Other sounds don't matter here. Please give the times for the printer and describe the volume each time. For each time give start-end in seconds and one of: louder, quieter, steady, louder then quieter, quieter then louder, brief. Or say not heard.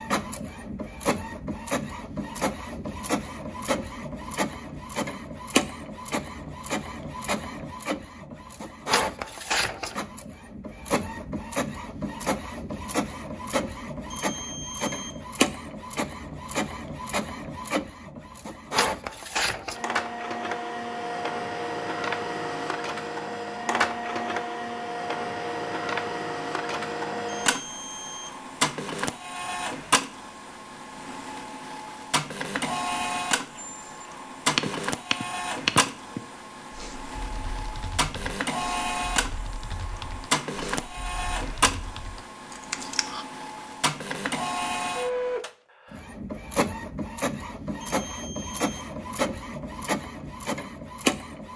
0.0-51.5 steady.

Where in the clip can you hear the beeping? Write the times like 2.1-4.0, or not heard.
14.1-15.2, 27.4-28.4, 47.8-48.8.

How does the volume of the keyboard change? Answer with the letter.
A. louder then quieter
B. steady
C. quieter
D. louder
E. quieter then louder
E.